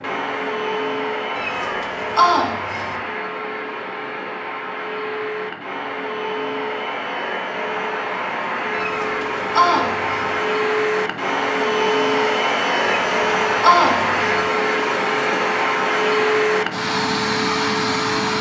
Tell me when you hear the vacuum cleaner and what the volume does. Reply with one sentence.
The vacuum cleaner can be heard from 0.0 to 18.3 s, getting louder.